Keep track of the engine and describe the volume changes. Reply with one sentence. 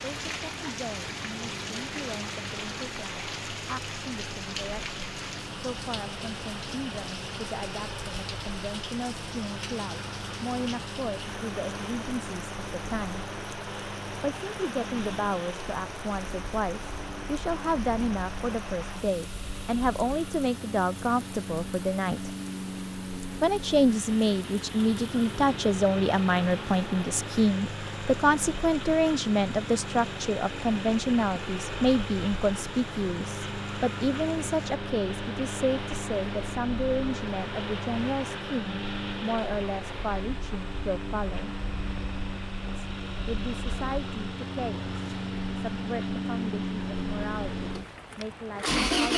The volume of the engine goes up.